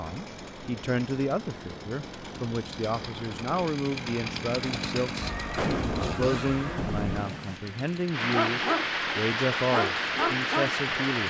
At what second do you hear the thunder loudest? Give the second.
6 s.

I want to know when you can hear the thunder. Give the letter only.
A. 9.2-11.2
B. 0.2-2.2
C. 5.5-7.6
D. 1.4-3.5
C.